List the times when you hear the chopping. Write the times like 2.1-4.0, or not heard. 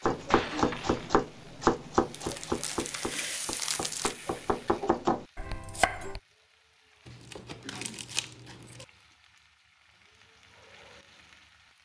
0.0-6.2.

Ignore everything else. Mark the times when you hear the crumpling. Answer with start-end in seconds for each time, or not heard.
2.1-4.2, 7.0-8.8.